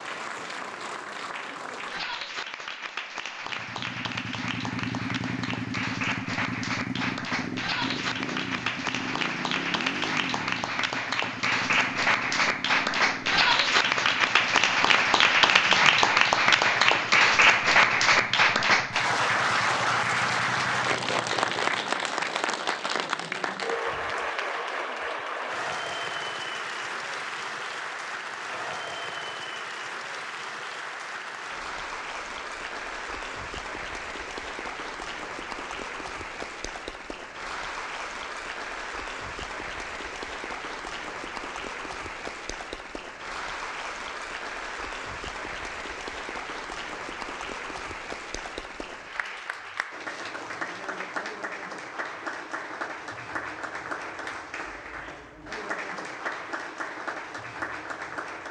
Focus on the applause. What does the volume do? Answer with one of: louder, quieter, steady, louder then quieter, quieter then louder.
louder then quieter.